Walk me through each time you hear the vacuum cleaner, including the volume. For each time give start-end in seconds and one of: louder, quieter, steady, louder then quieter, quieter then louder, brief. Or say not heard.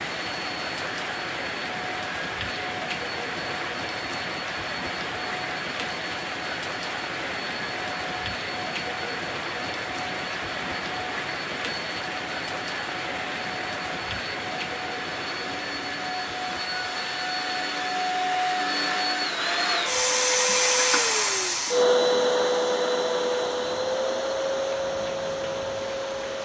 0.0-26.4 louder.